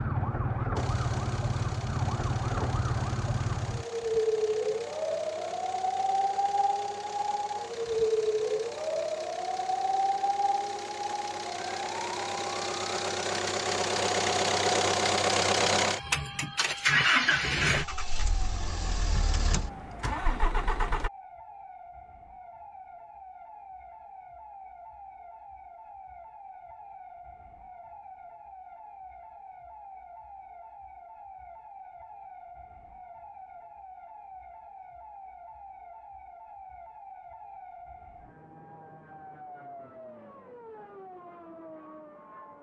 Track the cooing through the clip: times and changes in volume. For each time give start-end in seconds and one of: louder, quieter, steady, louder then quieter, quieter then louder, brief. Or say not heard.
not heard.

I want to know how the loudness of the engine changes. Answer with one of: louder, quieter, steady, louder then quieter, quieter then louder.
louder.